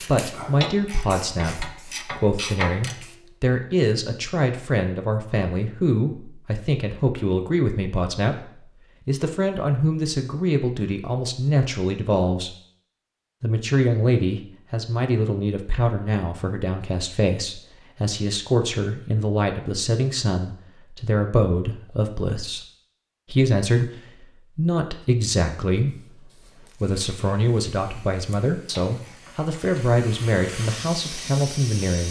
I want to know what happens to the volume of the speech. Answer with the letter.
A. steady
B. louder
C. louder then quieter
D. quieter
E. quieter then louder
A.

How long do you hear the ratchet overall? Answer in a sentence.
You can hear the ratchet for 4 seconds altogether.